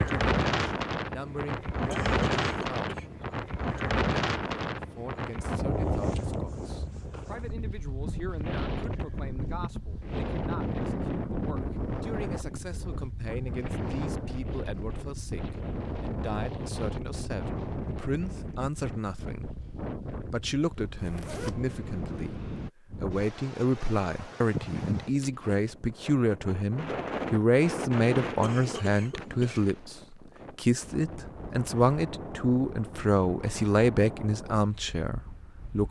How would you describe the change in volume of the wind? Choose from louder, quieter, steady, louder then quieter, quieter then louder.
quieter.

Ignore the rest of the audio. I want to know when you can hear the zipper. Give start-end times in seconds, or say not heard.
20.9-21.6.